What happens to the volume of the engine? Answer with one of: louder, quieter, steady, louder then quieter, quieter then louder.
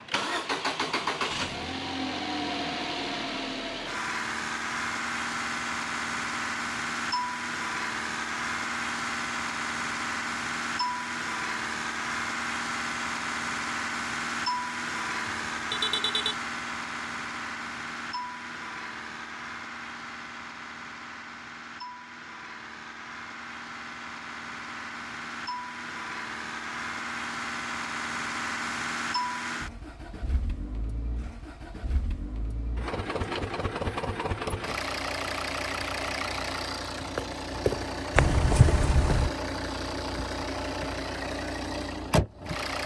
quieter then louder.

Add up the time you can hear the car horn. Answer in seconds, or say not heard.
2 s.